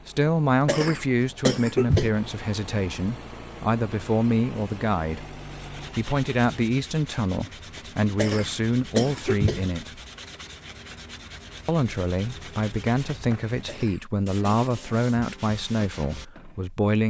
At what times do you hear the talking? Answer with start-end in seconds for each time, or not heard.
0.1-10.0, 11.7-17.0.